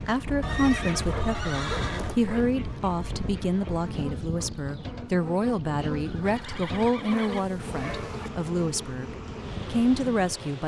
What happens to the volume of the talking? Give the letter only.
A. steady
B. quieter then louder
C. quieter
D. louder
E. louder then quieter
A.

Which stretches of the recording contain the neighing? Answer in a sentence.
You can hear the neighing from 0.4 to 2.2 s and from 6.0 to 7.5 s.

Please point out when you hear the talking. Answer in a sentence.
You can hear the talking from 0.0 to 10.6 s.